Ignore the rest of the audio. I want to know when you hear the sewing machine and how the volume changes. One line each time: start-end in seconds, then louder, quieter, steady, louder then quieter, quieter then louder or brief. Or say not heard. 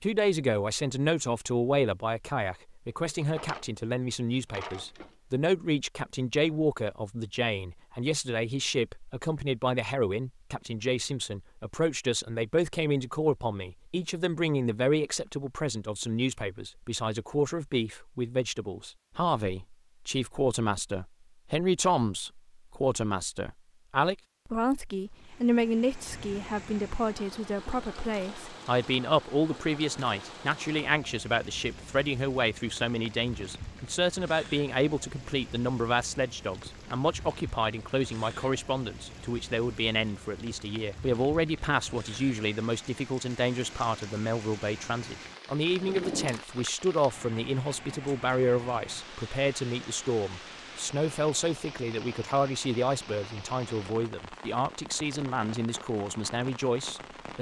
not heard.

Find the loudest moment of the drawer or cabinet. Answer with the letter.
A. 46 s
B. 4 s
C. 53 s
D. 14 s
A.